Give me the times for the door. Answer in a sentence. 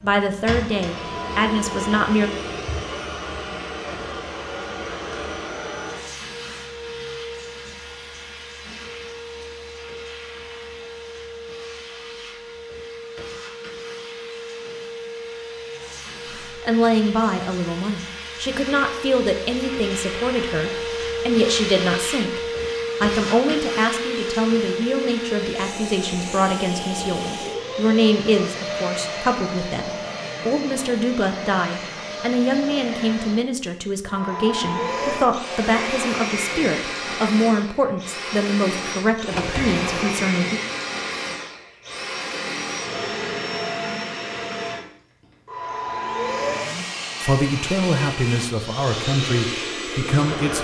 The door can be heard from 39.3 to 40.4 s.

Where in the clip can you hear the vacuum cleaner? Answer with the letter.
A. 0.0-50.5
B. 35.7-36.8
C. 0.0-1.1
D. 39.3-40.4
A.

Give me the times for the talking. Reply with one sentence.
You can hear the talking from 0.0 to 2.3 s, from 16.4 to 22.4 s, from 23.0 to 40.6 s and from 46.6 to 50.5 s.